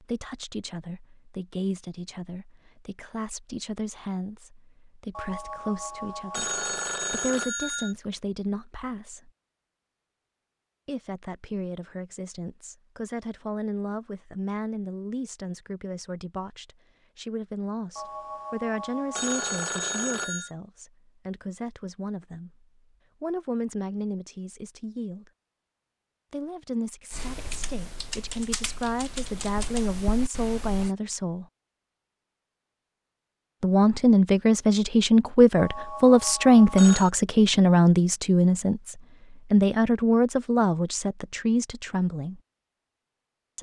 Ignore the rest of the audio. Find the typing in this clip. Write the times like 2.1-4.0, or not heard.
27.1-30.9.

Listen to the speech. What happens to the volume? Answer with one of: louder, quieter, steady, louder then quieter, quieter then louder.
louder.